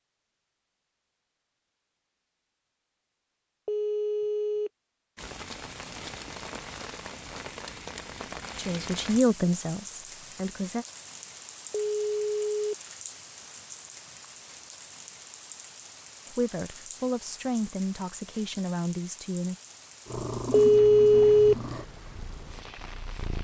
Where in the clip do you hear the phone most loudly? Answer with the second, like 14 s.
21 s.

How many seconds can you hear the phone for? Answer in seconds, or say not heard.
3 s.